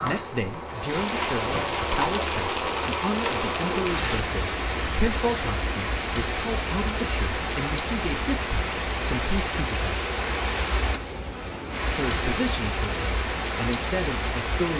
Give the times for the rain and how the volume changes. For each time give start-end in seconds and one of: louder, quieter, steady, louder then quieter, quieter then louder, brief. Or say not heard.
0.0-14.7 steady.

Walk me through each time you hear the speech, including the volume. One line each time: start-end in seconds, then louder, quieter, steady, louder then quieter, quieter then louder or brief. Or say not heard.
0.0-10.0 steady
11.9-14.7 brief.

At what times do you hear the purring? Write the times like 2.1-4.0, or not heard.
0.0-1.7.